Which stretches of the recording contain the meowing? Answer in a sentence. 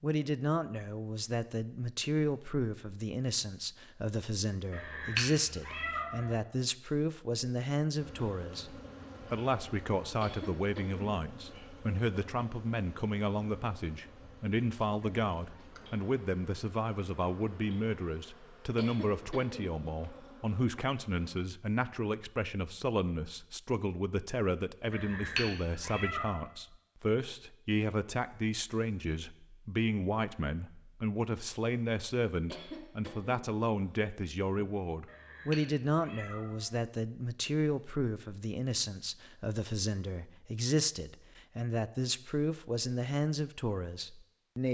You can hear the meowing from 4.7 to 6.3 s, from 24.9 to 26.4 s and from 35.0 to 36.7 s.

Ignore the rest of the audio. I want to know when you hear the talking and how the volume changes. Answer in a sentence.
The talking can be heard from 0.0 to 44.6 s, at a steady volume.